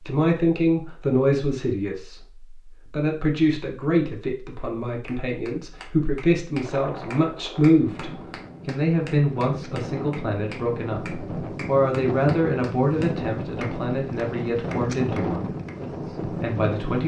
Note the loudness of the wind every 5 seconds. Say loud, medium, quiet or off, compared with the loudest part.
off, medium, loud, loud.